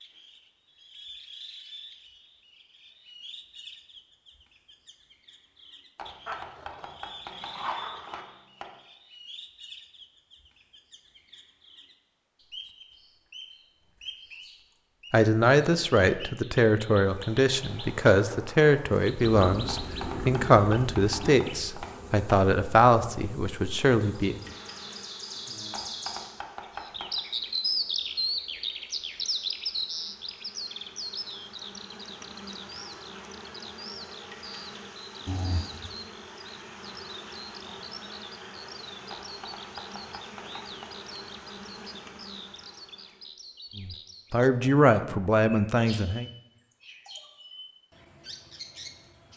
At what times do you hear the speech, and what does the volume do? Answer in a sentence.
You can hear the speech from 15.1 to 24.4 s, at a steady volume; and briefly from 43.8 to 46.2 s.